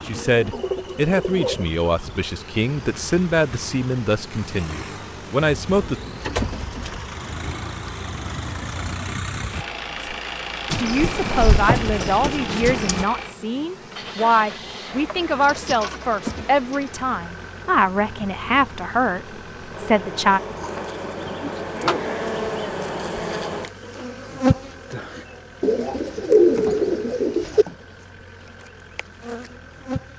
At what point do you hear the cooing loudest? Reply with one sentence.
The loudest moment of the cooing is at 26 seconds.